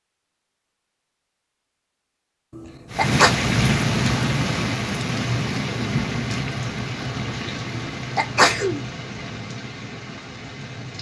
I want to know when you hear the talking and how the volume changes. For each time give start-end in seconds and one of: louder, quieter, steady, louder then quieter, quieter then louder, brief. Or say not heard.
not heard.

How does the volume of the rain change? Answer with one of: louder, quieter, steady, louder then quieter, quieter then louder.
quieter.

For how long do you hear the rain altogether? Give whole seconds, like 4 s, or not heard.
8 s.